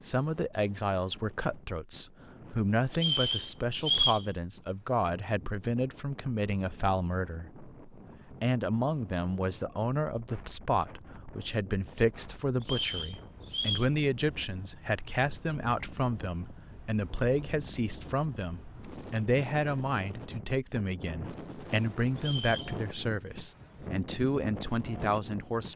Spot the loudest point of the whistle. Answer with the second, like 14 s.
4 s.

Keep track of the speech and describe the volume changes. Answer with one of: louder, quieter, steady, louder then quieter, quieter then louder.
steady.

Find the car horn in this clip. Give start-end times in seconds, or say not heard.
not heard.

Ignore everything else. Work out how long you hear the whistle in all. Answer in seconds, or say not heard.
3 s.